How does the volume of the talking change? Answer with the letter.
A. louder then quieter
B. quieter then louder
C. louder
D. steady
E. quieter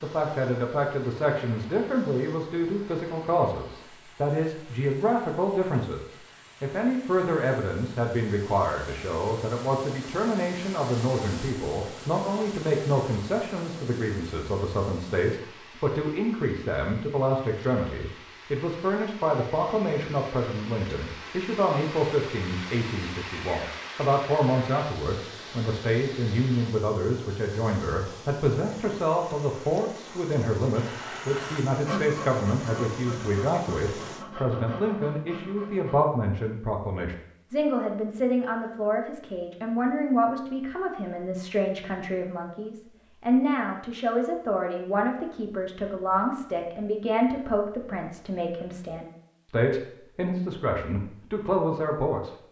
D.